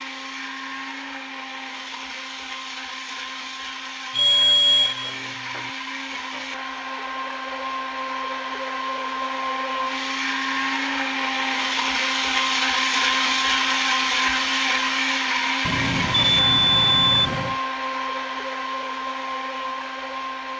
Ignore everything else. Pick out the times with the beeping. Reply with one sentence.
The beeping can be heard from 4.1 to 5.7 s and from 15.7 to 17.6 s.